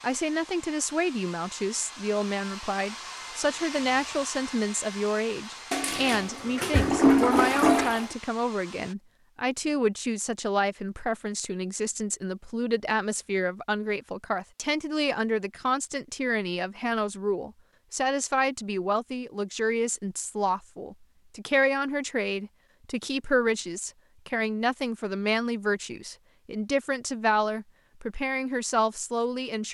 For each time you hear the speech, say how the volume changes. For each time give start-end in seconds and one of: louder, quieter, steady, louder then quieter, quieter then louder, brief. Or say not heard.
0.0-29.7 steady.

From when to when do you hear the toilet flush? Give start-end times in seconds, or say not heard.
5.7-8.1.